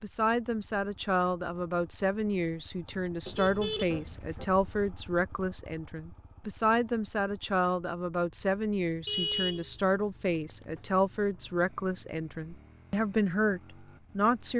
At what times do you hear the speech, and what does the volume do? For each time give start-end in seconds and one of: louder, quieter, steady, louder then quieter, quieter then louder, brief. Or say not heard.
0.0-14.5 steady.